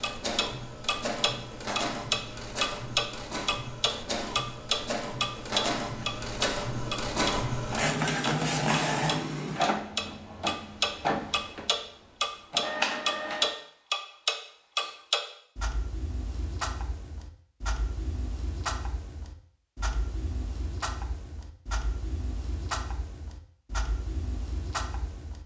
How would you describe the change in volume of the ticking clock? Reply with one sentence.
The volume of the ticking clock goes down.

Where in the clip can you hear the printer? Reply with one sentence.
You can hear the printer from 0.0 to 13.6 s.